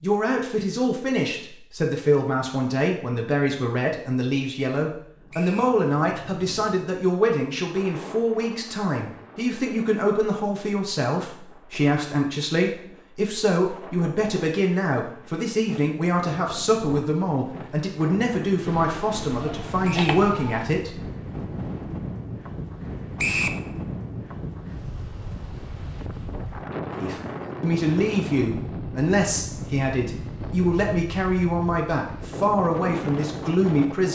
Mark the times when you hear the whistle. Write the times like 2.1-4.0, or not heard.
5.3-5.8, 19.8-20.2, 23.1-23.6.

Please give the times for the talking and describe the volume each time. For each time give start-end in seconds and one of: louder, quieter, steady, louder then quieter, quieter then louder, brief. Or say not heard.
0.0-21.1 steady
27.0-34.0 steady.